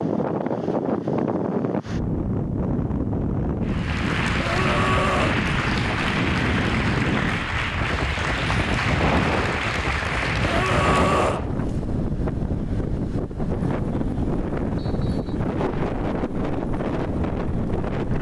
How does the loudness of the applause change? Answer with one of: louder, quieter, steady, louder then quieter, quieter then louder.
steady.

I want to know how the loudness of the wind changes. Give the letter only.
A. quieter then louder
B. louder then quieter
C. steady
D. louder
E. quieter
C.